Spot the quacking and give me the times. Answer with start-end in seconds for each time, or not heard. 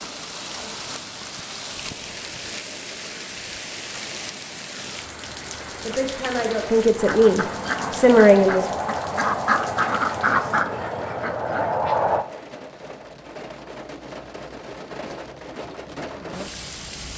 7.0-12.2.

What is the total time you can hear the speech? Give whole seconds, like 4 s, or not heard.
3 s.